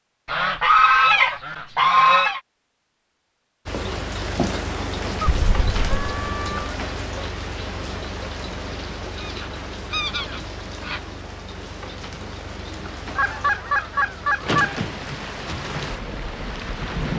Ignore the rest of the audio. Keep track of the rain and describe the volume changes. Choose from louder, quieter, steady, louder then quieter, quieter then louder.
quieter then louder.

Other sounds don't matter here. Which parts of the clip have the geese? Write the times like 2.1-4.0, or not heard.
0.2-2.4, 5.2-6.8, 9.2-11.0, 13.2-14.8.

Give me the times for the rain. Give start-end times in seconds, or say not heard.
3.6-17.1.